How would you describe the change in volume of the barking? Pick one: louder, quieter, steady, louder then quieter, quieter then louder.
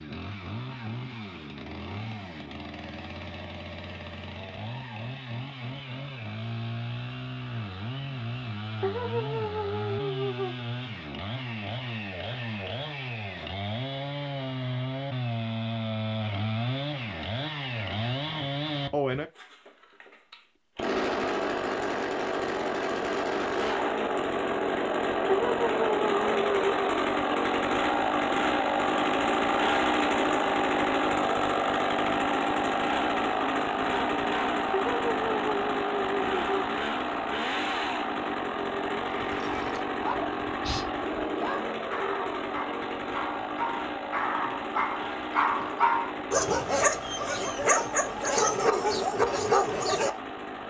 louder.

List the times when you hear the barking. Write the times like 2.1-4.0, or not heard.
39.0-50.2.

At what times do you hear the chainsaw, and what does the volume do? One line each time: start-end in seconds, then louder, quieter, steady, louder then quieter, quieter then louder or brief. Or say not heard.
0.0-50.6 louder then quieter.